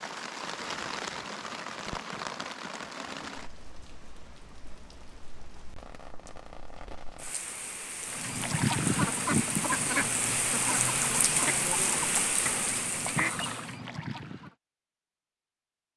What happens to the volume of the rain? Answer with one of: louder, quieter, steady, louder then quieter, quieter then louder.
quieter then louder.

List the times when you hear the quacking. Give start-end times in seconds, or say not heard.
8.1-14.5.